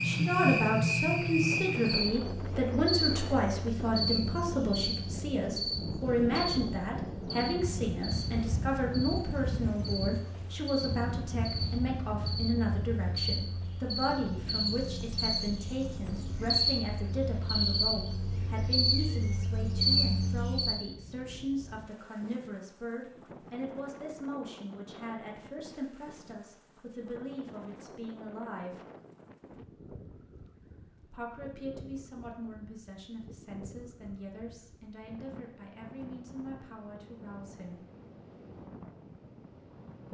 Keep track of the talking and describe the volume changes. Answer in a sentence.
The loudness of the talking goes down.